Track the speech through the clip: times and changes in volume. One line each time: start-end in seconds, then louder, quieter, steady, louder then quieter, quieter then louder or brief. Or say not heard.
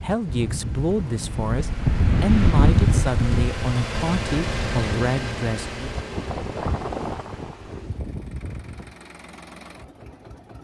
0.0-5.9 steady.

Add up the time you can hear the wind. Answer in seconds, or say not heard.
9 s.